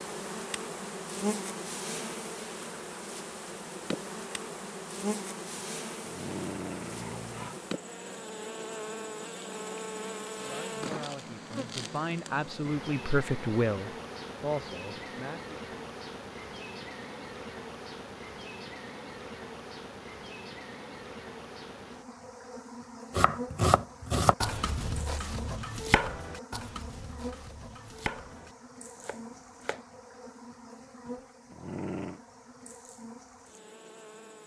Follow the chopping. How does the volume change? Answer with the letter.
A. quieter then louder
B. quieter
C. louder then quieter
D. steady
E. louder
B.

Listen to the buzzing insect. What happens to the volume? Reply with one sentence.
The volume of the buzzing insect goes down.